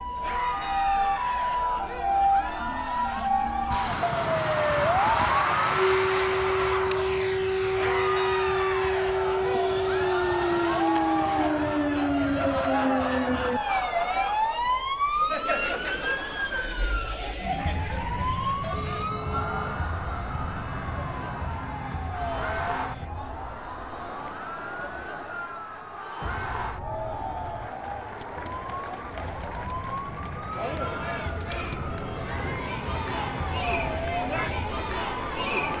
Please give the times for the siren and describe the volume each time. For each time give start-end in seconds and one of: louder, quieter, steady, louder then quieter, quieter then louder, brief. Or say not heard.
0.0-35.7 quieter.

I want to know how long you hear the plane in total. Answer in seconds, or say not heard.
8 s.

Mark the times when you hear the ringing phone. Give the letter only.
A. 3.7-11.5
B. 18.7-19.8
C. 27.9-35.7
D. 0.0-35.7
B.